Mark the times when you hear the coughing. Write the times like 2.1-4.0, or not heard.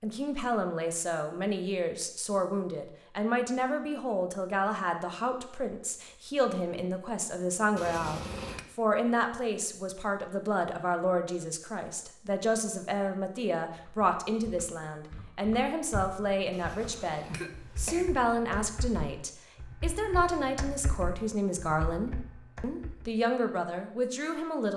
7.8-8.7, 16.5-18.1.